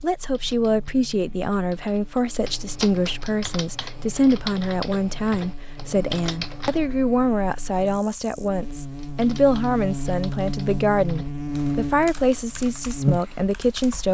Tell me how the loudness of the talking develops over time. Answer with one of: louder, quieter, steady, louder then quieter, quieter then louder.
steady.